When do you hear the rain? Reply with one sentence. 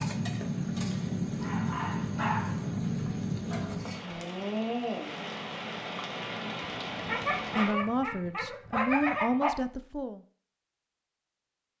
The rain can be heard from 0.0 to 7.8 s.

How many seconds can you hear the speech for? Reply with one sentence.
The speech can be heard for 3 seconds in total.